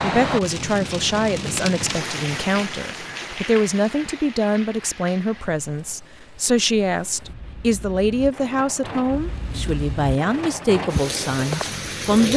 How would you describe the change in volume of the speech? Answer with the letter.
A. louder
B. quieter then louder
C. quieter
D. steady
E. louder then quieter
D.